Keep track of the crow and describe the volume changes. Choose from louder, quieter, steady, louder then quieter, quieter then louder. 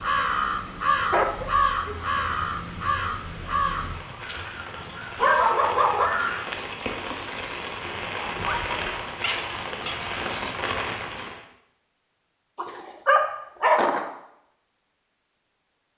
quieter then louder.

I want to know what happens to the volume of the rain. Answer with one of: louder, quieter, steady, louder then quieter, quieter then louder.
louder.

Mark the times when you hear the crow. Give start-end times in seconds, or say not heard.
0.0-6.6.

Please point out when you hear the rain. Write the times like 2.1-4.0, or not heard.
0.0-11.4.